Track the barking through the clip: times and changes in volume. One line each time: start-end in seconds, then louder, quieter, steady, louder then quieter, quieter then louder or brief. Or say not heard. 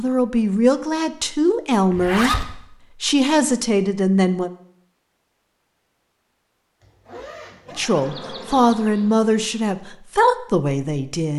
not heard.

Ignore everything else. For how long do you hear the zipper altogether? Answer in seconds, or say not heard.
2 s.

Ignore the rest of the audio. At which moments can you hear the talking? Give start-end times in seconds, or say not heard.
0.0-4.5, 7.8-11.3.